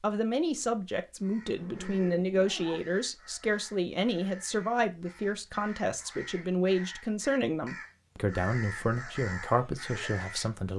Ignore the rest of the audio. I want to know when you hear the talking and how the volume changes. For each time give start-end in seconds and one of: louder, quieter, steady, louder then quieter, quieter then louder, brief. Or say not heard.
0.0-10.7 steady.